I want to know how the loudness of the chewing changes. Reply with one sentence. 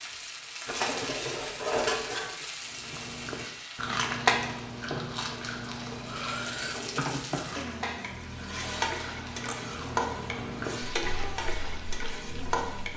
The volume of the chewing goes down.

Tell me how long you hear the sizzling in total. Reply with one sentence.
The sizzling can be heard for 13 seconds in total.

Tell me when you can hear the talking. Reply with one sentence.
The talking can't be heard in this clip.